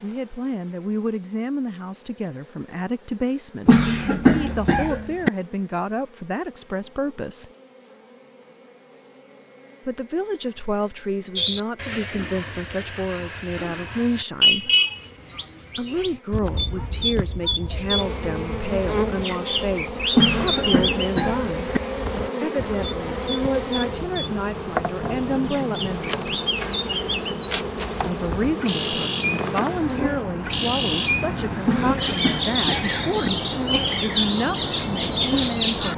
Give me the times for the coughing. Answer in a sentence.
You can hear the coughing from 3.6 to 5.3 s, from 20.1 to 21.8 s and from 31.6 to 33.3 s.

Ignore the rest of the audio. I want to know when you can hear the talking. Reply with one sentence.
The talking can be heard from 0.0 to 7.5 s, from 9.8 to 14.7 s, from 15.8 to 21.8 s, from 22.4 to 26.1 s and from 28.1 to 35.9 s.